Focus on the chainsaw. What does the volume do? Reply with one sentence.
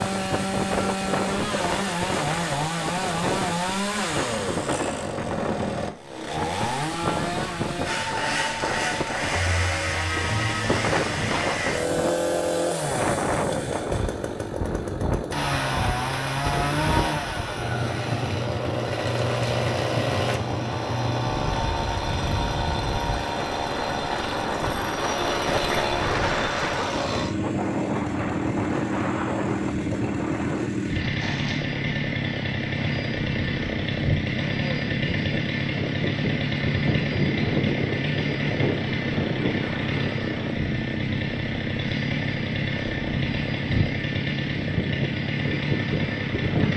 The loudness of the chainsaw stays about the same.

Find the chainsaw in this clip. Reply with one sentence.
The chainsaw can be heard from 0.0 to 46.7 s.